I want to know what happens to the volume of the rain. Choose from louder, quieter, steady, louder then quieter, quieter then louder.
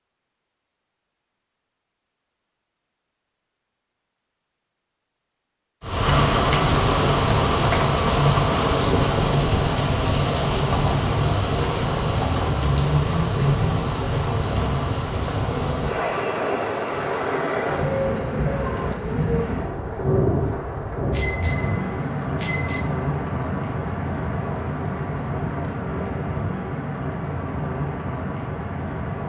quieter.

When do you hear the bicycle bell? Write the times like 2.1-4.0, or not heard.
21.1-22.9.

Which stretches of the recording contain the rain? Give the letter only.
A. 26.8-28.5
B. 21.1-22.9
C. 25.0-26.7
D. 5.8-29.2
D.